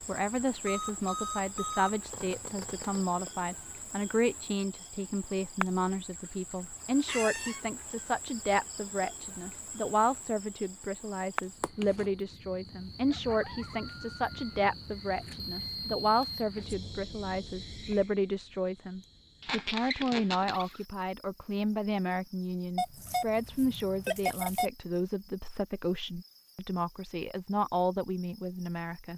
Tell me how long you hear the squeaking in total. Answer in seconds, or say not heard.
2 s.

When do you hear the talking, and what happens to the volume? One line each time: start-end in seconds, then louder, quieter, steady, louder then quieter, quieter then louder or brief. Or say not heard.
0.1-29.1 steady.